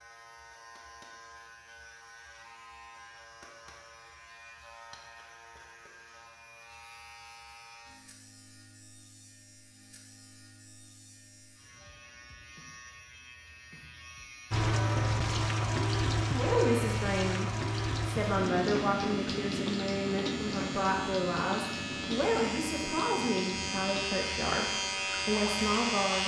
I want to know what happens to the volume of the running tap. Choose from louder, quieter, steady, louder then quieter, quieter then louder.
quieter.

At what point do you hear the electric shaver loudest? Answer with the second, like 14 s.
26 s.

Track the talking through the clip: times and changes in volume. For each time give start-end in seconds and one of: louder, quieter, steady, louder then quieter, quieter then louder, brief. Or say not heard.
16.3-26.2 steady.